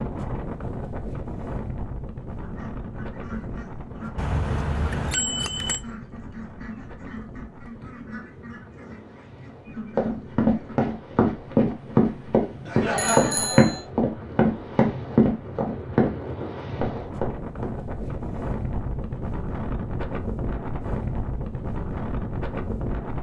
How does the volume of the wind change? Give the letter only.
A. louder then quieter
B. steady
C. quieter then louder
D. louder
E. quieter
C.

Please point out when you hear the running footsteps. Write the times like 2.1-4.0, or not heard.
9.9-17.8.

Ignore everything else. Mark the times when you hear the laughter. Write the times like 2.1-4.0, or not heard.
12.7-13.9.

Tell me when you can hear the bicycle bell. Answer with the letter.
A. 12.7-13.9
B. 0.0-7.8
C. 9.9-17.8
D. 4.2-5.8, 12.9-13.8
D.